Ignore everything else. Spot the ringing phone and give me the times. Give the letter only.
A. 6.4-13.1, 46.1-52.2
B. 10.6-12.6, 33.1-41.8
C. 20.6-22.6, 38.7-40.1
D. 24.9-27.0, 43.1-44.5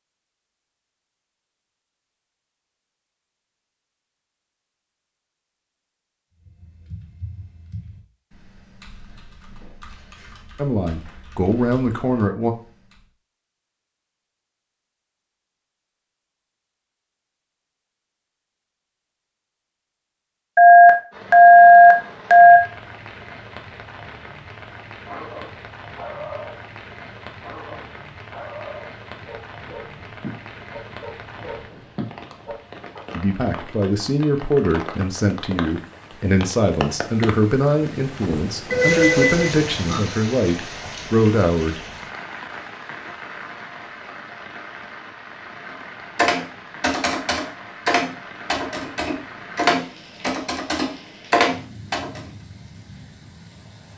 C.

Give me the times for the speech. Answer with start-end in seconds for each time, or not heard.
10.6-12.6, 33.1-41.8.